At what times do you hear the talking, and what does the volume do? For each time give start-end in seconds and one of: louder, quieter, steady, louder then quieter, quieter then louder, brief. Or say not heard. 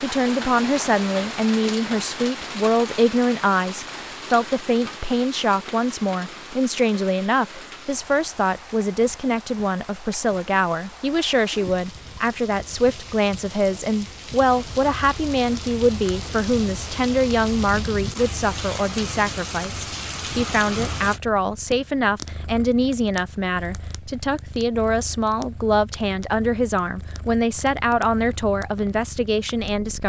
0.0-30.0 steady.